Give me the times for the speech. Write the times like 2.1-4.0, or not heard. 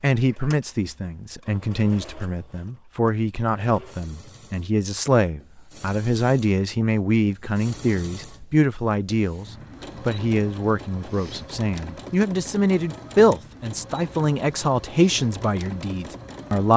0.0-16.7.